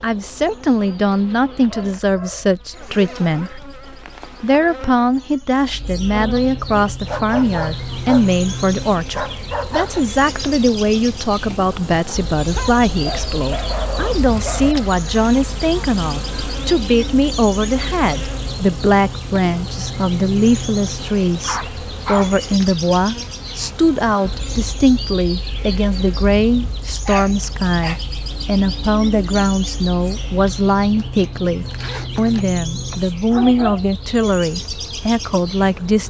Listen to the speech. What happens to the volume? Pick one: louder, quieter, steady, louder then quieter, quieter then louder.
steady.